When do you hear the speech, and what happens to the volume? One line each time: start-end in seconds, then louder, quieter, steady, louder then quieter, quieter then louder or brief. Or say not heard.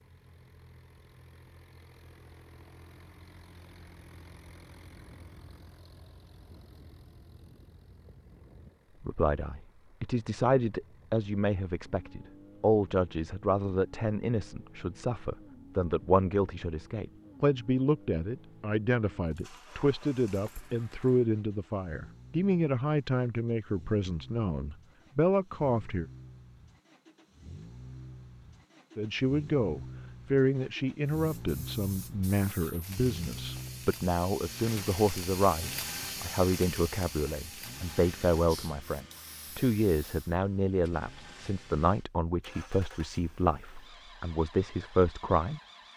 9.0-26.1 steady
28.9-45.6 steady.